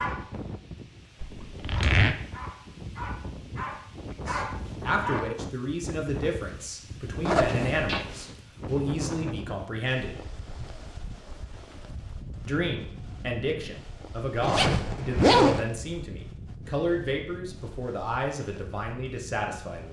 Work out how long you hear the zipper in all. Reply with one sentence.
You can hear the zipper for 3 seconds altogether.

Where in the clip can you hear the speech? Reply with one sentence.
You can hear the speech from 4.1 to 10.2 s and from 12.4 to 19.8 s.